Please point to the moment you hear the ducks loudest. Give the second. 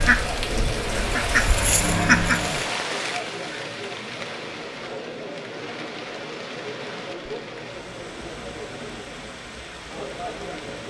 2 s.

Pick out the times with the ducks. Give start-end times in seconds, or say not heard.
0.0-2.7.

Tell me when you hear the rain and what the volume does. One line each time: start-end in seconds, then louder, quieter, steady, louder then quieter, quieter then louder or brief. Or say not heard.
0.0-10.8 quieter.